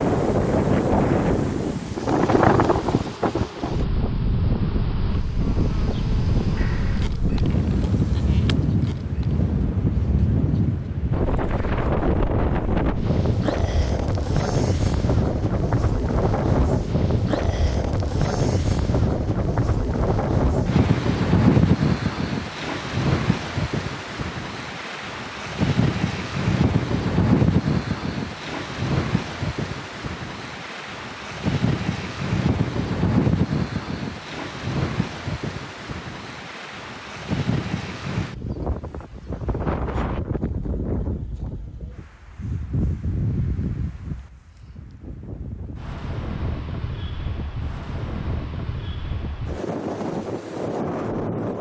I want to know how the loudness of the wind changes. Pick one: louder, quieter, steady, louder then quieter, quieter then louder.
quieter.